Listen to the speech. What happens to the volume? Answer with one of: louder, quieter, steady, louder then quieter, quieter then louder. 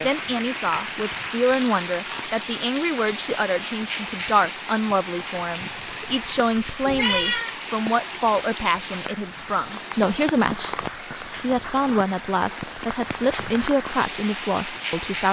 steady.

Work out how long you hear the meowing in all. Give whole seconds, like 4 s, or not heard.
2 s.